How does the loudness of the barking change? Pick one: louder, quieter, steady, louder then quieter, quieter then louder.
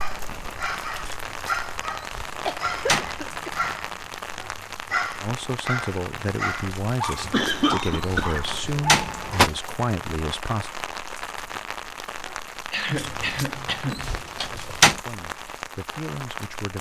steady.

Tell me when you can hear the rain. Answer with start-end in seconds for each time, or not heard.
0.0-16.7.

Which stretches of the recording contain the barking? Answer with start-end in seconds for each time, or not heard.
0.0-9.5.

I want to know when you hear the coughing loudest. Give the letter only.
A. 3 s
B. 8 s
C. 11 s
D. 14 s
B.